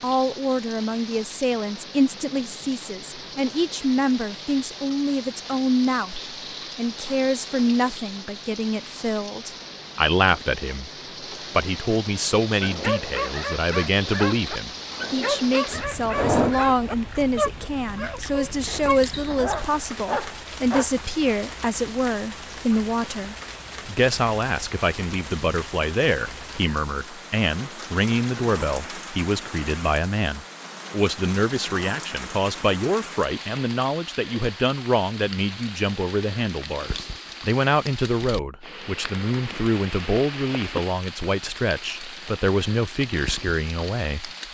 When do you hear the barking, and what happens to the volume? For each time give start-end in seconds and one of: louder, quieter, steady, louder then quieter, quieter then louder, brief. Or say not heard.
12.6-20.9 steady.